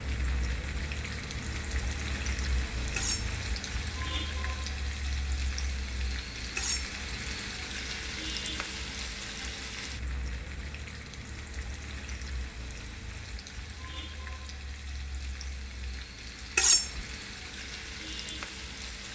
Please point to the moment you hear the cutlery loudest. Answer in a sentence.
The loudest moment of the cutlery is at 17 seconds.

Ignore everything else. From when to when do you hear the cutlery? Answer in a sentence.
You can hear the cutlery from 3.0 to 3.4 s, from 6.5 to 7.0 s and from 16.6 to 17.0 s.